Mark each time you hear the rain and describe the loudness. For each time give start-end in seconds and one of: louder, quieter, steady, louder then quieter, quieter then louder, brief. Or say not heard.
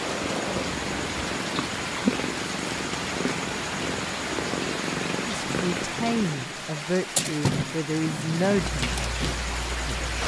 0.0-10.2 steady.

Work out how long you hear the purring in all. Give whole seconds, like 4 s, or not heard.
9 s.